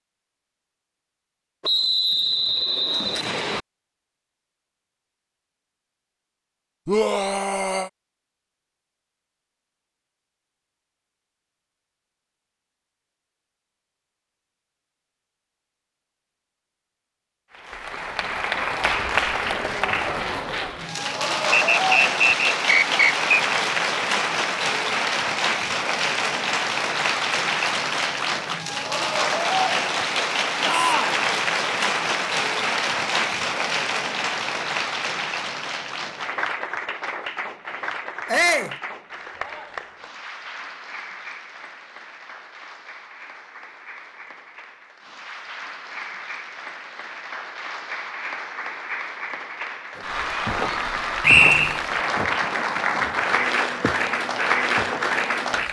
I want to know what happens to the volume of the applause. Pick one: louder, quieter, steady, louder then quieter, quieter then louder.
quieter then louder.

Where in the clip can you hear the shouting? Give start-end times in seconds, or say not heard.
6.8-7.9, 30.6-31.2, 38.2-38.8.